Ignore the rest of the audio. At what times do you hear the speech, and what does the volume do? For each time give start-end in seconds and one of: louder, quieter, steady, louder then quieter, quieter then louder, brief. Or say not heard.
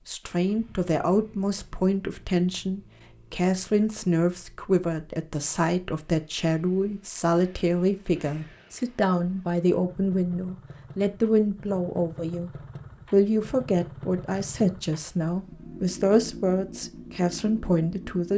0.1-18.3 steady.